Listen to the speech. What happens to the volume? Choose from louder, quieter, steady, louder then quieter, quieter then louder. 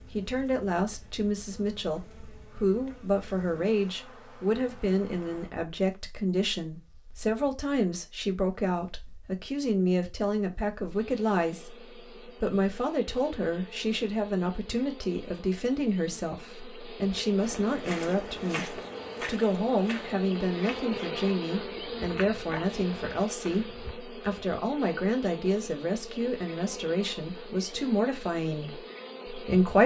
steady.